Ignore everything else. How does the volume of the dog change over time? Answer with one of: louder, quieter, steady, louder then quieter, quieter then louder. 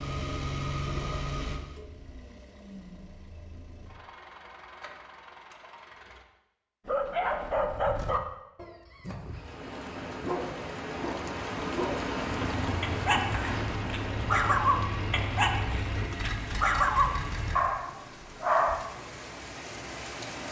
quieter then louder.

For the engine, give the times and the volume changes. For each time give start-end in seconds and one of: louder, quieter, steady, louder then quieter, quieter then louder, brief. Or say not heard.
0.0-6.2 quieter
12.4-17.6 steady.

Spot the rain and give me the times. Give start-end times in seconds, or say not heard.
9.2-20.4.